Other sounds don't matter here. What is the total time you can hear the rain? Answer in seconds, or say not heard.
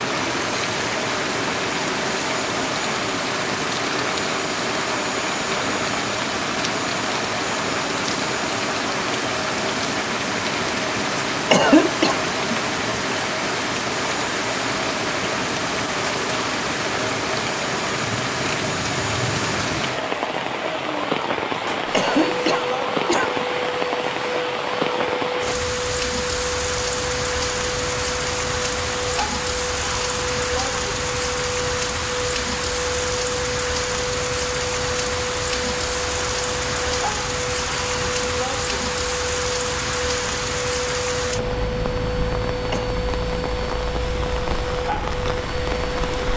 46 s.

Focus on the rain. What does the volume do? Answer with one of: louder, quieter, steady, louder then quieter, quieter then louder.
steady.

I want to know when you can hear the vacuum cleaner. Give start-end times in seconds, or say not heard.
0.0-46.3.